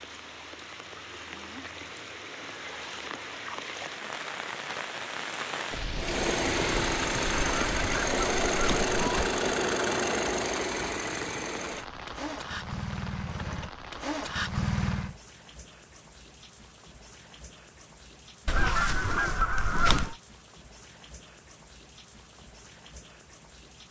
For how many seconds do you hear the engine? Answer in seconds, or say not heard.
9 s.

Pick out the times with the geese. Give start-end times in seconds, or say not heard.
7.2-9.3, 18.4-20.1.